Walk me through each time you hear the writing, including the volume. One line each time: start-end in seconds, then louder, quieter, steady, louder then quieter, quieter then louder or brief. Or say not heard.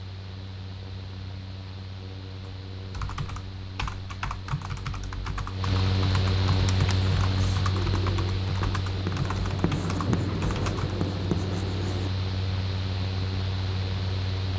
6.6-12.1 louder.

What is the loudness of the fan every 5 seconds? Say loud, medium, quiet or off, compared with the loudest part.
medium, loud, loud.